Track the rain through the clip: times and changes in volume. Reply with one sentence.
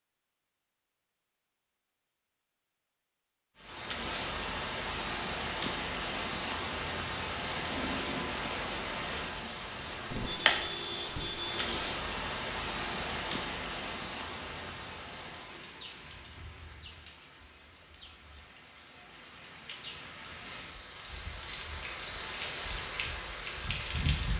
The rain can be heard from 3.5 to 24.3 s, getting quieter then louder.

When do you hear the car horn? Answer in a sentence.
The car horn can be heard from 10.1 to 11.9 s.